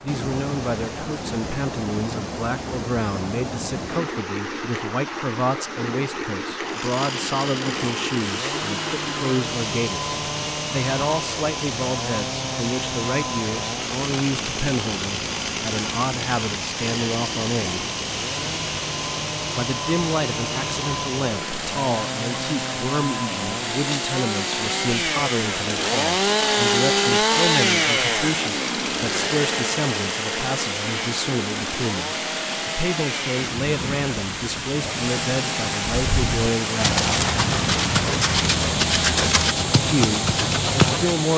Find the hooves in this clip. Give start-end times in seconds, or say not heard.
35.9-41.2.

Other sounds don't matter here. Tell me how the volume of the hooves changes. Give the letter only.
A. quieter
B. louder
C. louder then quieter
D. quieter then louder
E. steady
E.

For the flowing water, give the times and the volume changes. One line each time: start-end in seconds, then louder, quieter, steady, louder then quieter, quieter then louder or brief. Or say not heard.
0.0-41.3 steady.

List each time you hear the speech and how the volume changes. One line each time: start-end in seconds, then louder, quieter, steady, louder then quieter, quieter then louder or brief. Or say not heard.
0.0-17.9 steady
19.6-37.0 steady
39.8-41.3 brief.